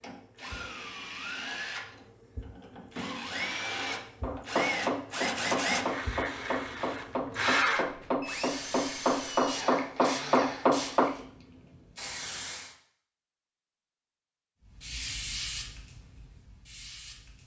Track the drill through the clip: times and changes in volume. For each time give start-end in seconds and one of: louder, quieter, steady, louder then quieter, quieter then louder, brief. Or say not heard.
0.0-11.1 louder then quieter.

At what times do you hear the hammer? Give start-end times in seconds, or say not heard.
4.2-11.2.